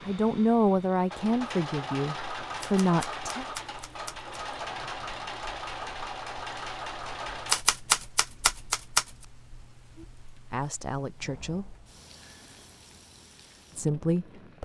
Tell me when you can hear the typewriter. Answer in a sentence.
The typewriter can be heard from 2.6 to 4.3 s and from 7.5 to 9.1 s.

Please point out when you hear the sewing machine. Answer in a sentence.
You can hear the sewing machine from 0.0 to 7.7 s.